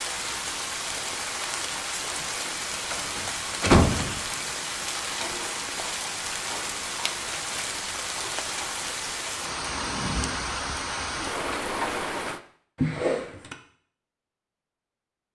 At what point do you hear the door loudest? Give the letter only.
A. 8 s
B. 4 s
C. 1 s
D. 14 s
B.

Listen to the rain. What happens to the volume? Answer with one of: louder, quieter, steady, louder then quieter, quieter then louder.
steady.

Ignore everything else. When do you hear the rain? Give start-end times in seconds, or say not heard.
0.0-12.4.